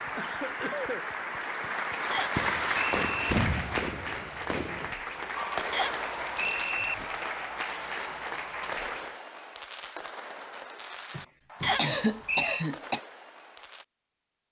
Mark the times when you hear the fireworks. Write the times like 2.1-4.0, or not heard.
2.4-13.8.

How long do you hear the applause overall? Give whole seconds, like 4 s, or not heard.
9 s.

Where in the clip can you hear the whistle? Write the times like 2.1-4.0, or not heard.
2.1-3.4, 5.7-7.0, 11.6-12.7.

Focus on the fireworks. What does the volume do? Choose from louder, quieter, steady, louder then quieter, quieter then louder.
quieter.